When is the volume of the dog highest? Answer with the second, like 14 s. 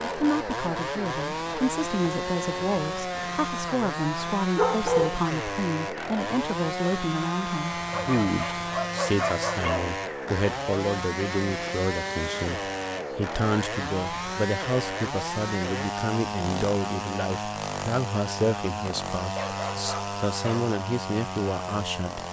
5 s.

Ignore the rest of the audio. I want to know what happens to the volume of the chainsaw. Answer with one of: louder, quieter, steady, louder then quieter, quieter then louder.
steady.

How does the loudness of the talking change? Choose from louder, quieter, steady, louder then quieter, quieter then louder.
steady.